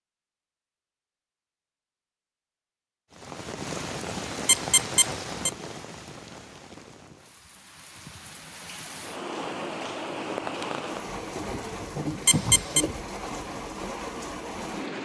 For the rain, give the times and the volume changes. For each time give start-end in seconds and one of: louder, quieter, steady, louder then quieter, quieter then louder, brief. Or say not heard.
3.1-14.9 quieter then louder.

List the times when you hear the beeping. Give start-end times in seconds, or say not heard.
4.5-5.5, 12.2-12.8.